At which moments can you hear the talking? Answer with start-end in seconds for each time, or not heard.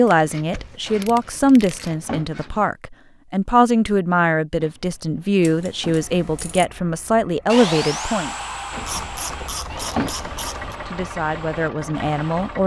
0.0-8.3, 10.2-12.6.